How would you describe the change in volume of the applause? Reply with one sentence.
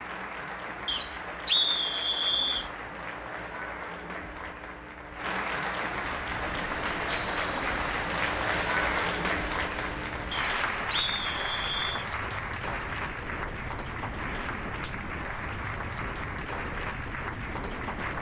The volume of the applause goes up, then down.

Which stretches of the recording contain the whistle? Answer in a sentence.
The whistle can be heard from 0.8 to 2.7 s and from 10.3 to 12.1 s.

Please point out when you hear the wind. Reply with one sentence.
The wind can be heard from 6.0 to 18.1 s.